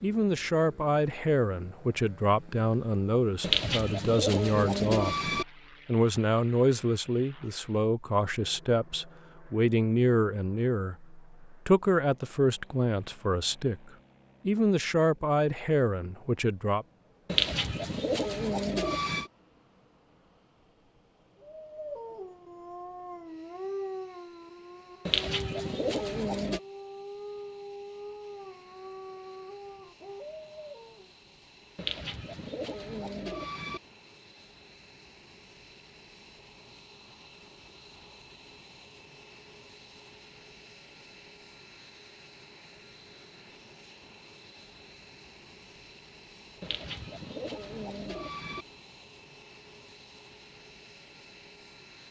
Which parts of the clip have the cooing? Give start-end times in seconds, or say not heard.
3.4-5.5, 17.2-19.3, 25.1-26.6, 31.8-33.8, 46.6-48.6.